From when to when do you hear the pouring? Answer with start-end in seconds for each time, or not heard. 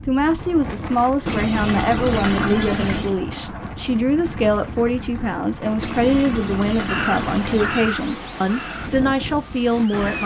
1.2-3.2, 5.8-7.8.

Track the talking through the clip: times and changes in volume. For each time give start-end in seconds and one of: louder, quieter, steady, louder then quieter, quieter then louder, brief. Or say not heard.
0.1-10.2 steady.